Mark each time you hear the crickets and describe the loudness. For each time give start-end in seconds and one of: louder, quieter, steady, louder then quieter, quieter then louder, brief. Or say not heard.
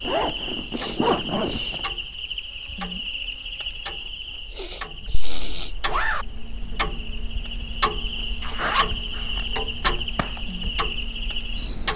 0.0-11.9 quieter then louder.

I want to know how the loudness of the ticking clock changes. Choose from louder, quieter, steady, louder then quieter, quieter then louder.
louder.